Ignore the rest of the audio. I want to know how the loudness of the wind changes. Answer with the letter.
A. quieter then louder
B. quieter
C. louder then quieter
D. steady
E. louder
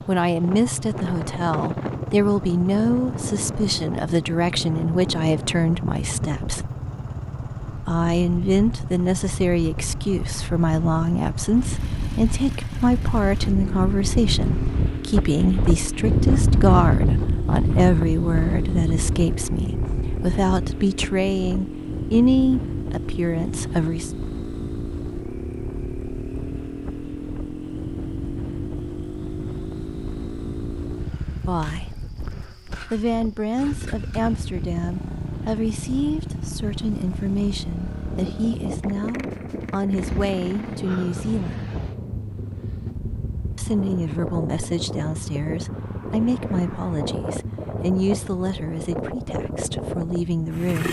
C.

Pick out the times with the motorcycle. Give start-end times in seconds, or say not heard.
0.0-50.8.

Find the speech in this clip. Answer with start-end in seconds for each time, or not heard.
0.1-6.7, 7.8-24.1, 31.3-31.9, 32.9-41.7, 43.5-50.8.